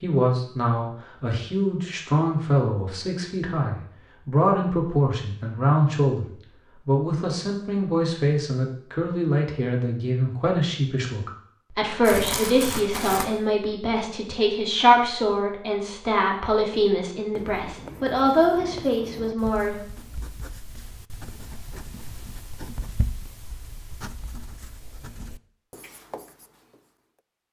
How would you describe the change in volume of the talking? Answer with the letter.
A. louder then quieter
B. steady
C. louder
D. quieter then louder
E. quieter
B.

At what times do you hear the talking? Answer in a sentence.
The talking can be heard from 0.0 to 19.8 s.